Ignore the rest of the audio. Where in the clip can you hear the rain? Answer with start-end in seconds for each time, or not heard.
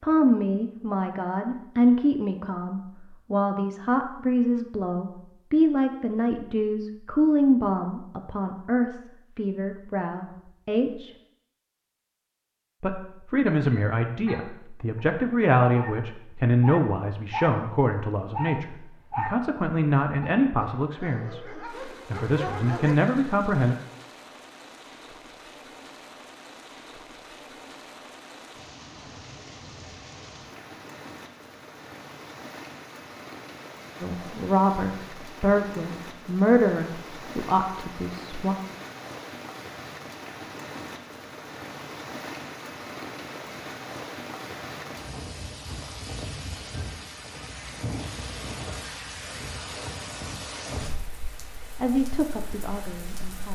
21.6-53.5.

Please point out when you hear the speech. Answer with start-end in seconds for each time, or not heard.
0.0-11.1, 12.8-21.4, 22.1-23.8, 34.0-38.5, 51.8-53.5.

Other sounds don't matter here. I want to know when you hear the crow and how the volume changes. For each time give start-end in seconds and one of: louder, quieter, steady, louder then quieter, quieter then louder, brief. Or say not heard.
not heard.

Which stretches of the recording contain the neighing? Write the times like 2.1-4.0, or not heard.
not heard.